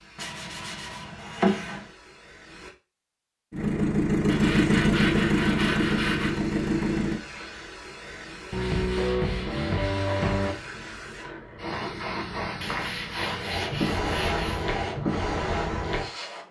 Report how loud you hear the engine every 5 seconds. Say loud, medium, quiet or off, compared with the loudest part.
loud, loud, off, off.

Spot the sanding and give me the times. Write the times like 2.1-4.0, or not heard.
0.1-1.9, 4.2-6.4, 8.5-10.6, 12.6-14.7.